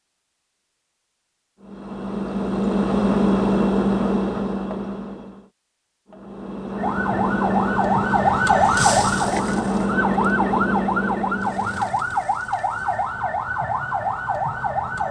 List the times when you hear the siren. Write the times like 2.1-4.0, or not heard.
6.8-15.0.